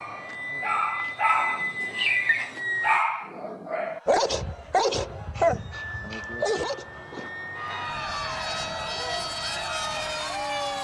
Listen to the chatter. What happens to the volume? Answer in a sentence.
The volume of the chatter goes up.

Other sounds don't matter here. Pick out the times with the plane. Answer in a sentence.
You can hear the plane from 0.0 to 3.0 s and from 5.7 to 10.7 s.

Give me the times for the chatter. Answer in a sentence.
The chatter can be heard from 3.8 to 10.7 s.